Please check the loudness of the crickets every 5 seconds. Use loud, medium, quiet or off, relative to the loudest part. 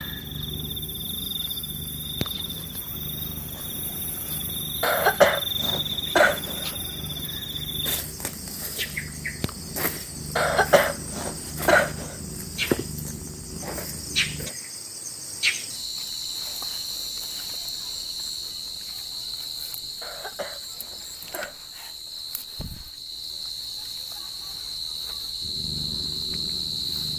medium, loud, loud, loud, medium, loud.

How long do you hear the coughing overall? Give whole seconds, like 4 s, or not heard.
5 s.